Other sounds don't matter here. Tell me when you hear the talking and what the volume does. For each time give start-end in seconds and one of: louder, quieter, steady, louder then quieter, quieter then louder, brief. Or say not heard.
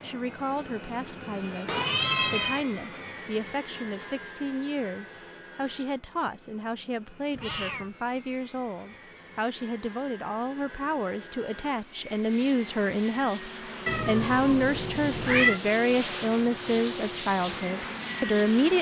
0.0-18.7 louder.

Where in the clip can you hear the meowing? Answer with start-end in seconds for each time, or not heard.
1.6-2.6, 7.3-7.9, 13.8-15.6.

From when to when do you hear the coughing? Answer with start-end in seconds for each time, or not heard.
not heard.